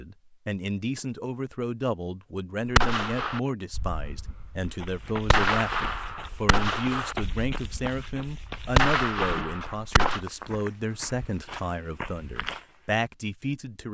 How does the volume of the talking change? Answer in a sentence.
The loudness of the talking stays about the same.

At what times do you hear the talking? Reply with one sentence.
You can hear the talking from 0.0 to 13.8 s.